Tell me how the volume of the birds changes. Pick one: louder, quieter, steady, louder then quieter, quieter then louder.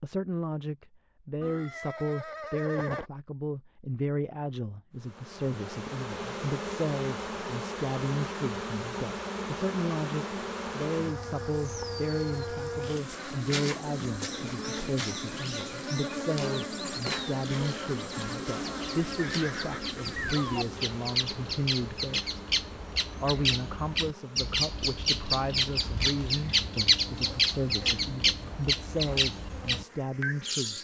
louder.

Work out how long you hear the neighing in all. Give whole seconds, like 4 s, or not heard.
3 s.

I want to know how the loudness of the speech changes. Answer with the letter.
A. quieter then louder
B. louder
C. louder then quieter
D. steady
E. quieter
D.